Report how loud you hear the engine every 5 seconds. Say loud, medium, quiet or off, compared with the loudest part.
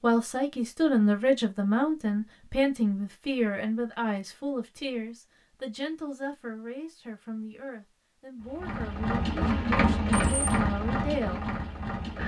off, loud, loud.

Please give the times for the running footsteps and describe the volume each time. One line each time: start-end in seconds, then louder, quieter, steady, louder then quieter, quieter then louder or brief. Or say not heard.
not heard.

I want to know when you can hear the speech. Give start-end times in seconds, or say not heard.
0.0-11.4.